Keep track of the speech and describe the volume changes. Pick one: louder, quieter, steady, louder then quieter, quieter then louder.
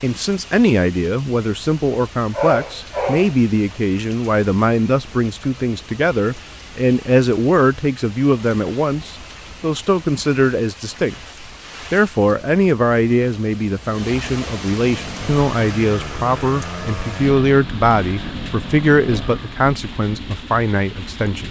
steady.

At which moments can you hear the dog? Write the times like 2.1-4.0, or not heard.
2.3-3.4.